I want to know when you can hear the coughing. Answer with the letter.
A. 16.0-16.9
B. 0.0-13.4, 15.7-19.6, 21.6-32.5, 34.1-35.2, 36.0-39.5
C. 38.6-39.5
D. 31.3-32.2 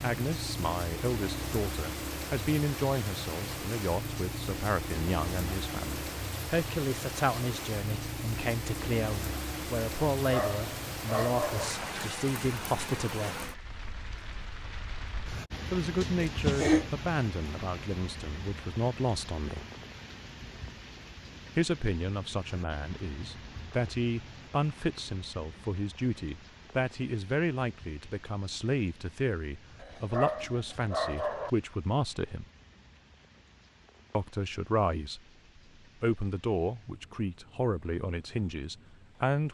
A.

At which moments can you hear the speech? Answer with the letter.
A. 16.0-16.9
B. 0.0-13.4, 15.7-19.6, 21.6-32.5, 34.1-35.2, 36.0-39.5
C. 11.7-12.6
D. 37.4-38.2
B.